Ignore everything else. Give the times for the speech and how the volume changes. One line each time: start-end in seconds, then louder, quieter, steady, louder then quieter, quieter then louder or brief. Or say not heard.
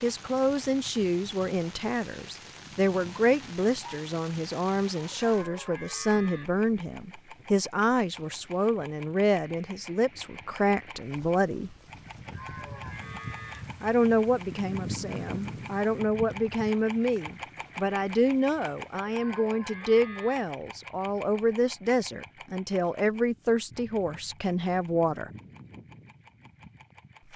0.0-11.7 steady
13.8-25.3 steady.